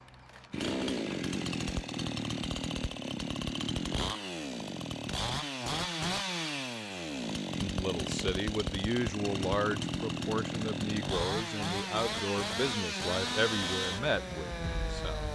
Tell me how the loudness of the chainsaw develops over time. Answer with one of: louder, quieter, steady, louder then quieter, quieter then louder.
steady.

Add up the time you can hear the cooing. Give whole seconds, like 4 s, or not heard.
not heard.